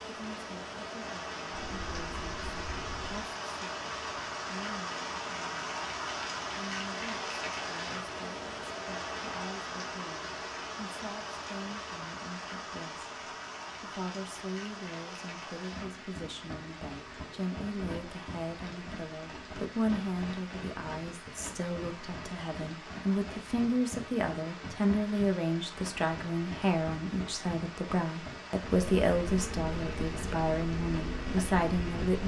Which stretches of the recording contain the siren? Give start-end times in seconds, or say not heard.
not heard.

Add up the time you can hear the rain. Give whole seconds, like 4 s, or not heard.
32 s.